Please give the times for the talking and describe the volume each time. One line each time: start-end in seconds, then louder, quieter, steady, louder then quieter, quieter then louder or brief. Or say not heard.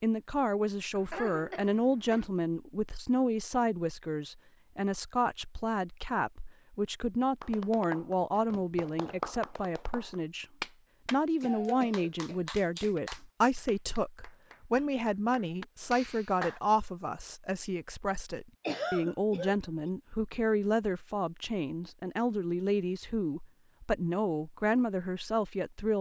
0.0-25.9 steady.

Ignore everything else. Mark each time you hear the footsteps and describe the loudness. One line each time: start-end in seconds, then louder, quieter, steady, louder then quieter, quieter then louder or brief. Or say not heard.
not heard.